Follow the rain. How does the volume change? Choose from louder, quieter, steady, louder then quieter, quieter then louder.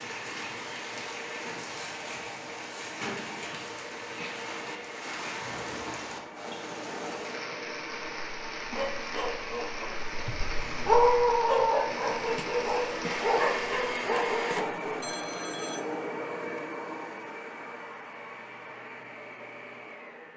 steady.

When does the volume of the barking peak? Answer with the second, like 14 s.
11 s.